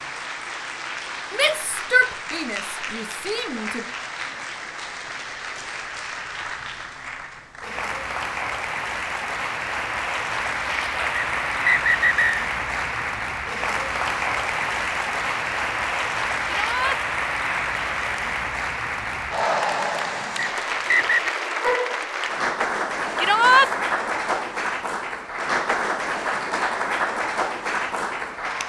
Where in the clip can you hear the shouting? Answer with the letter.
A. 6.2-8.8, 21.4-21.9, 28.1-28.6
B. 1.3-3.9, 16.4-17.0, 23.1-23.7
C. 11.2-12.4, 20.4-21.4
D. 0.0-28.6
B.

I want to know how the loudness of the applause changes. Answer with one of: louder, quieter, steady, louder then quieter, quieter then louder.
louder.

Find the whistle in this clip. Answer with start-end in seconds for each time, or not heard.
11.2-12.4, 20.4-21.4.